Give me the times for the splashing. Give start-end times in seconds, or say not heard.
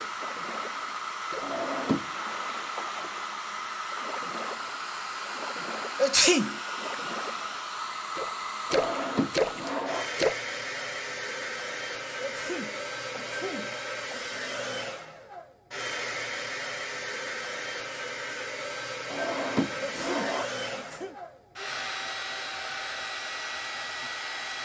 0.2-10.3.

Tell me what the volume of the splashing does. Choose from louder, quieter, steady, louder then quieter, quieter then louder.
louder.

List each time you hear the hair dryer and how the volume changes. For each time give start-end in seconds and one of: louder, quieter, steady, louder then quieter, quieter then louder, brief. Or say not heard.
0.0-24.5 steady.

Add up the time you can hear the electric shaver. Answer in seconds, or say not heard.
not heard.